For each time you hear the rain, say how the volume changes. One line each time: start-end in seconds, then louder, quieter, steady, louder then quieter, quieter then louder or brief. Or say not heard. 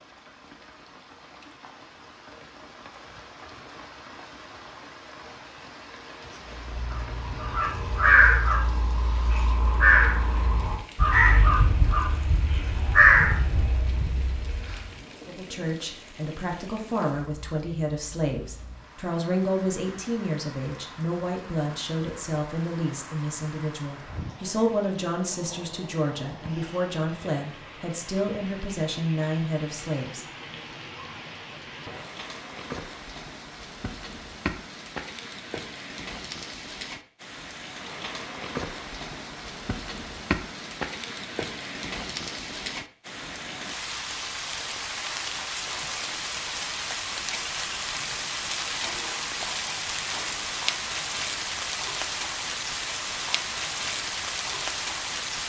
0.0-55.4 louder.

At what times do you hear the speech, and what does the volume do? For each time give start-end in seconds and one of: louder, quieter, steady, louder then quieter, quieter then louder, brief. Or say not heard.
15.2-30.2 steady.